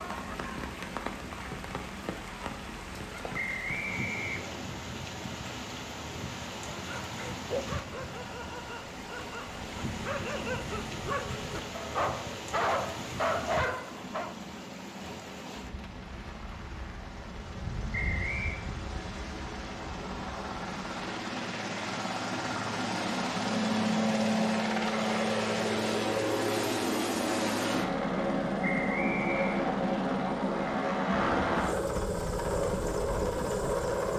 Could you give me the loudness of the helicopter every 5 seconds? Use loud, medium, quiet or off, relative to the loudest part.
quiet, quiet, quiet, quiet, loud, loud, loud.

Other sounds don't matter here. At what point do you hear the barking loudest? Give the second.
13 s.